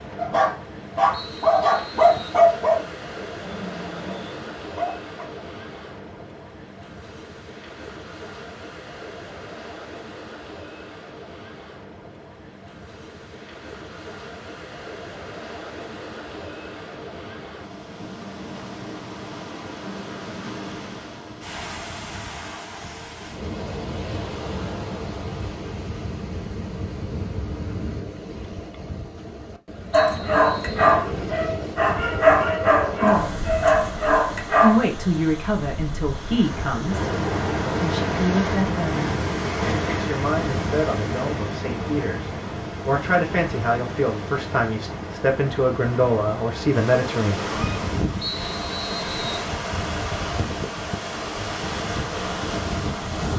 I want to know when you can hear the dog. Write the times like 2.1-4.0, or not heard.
0.1-5.2, 29.9-34.9.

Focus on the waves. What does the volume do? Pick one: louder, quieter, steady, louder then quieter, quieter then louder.
louder.